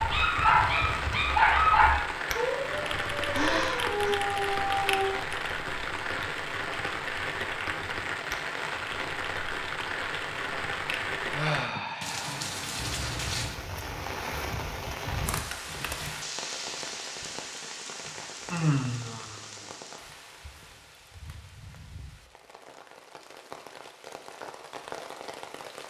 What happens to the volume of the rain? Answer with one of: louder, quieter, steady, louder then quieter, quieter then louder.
quieter.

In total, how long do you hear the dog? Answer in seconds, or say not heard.
5 s.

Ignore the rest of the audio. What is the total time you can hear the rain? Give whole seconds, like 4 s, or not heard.
26 s.